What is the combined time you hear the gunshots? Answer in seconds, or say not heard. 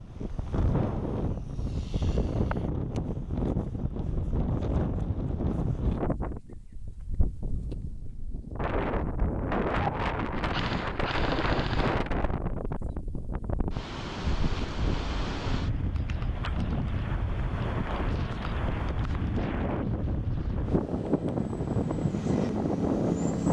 2 s.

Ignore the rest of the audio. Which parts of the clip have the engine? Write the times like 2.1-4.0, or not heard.
20.9-23.4.